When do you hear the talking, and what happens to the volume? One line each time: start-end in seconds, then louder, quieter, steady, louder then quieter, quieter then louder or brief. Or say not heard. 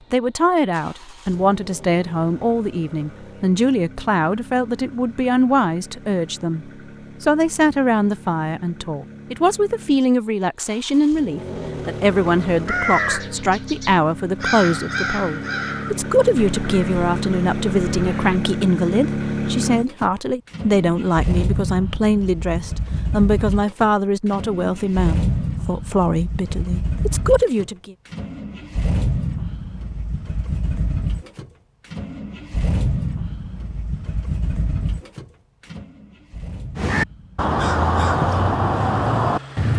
0.1-27.9 steady.